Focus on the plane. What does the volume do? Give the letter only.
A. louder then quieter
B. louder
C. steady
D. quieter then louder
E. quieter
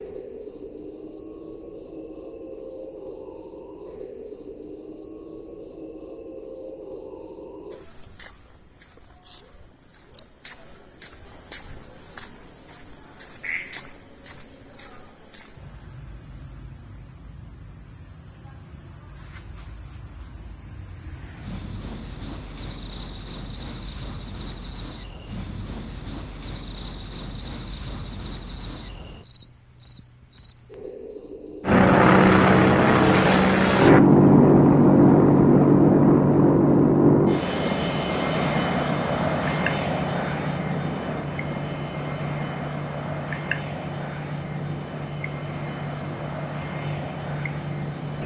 E.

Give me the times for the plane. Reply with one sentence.
You can hear the plane from 31.6 to 48.2 s.